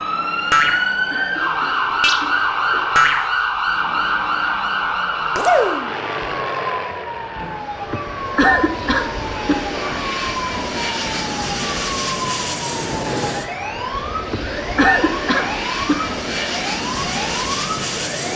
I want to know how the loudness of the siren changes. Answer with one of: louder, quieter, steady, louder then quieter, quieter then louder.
quieter.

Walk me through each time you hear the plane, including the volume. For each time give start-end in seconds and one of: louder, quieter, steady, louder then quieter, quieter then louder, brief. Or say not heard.
0.0-18.3 louder.